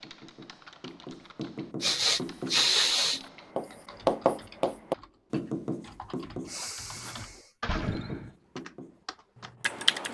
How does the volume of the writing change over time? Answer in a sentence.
The loudness of the writing goes up, then down.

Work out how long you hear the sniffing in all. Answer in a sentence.
You can hear the sniffing for 3 seconds altogether.